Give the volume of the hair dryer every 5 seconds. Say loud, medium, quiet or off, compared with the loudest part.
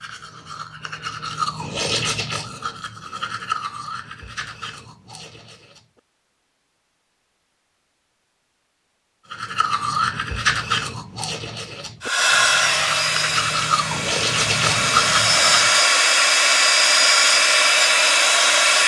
off, off, medium, loud.